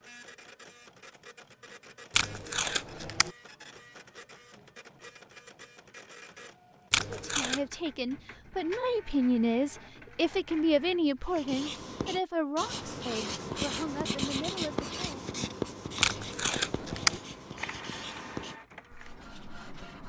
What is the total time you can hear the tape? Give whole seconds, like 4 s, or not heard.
3 s.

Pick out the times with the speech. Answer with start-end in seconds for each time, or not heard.
7.1-15.3.